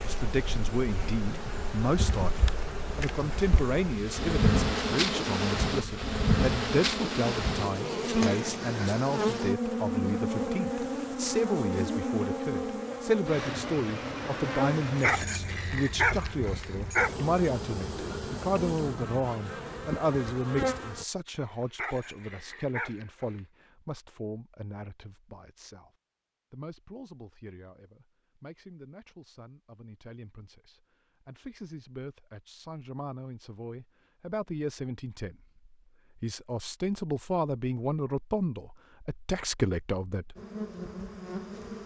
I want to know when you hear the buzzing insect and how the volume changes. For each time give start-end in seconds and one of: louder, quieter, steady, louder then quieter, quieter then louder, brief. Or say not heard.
0.0-21.1 louder then quieter
40.4-41.8 brief.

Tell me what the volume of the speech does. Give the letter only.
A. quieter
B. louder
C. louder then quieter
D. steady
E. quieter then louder
E.